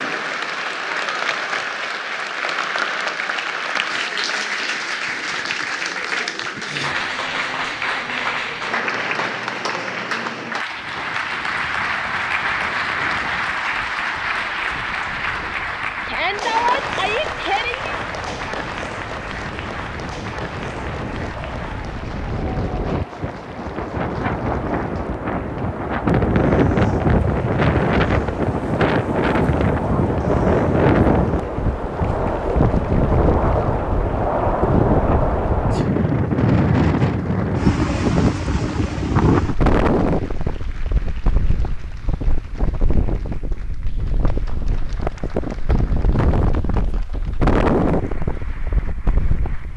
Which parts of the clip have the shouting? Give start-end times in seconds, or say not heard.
16.1-17.9.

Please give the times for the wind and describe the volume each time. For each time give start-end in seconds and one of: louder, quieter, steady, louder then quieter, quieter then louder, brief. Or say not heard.
10.7-49.7 louder then quieter.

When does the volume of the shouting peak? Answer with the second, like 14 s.
17 s.